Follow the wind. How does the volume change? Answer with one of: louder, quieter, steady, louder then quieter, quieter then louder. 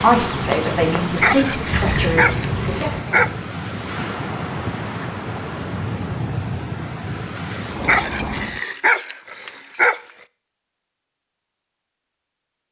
steady.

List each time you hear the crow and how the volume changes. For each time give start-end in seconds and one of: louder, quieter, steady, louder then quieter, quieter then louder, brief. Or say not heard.
not heard.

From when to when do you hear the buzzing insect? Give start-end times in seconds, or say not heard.
0.0-3.0.